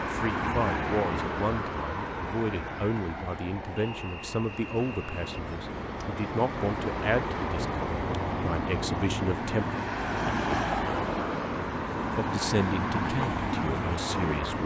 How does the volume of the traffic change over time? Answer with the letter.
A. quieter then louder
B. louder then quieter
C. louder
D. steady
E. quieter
A.